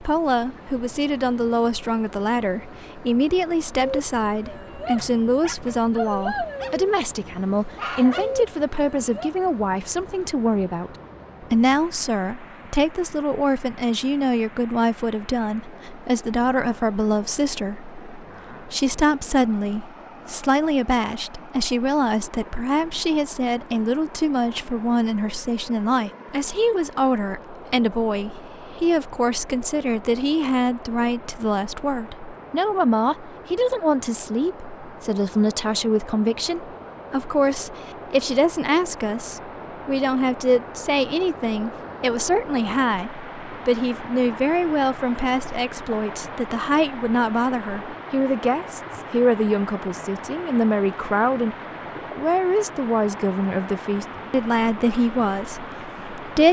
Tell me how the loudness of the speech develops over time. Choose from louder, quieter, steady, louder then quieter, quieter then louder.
steady.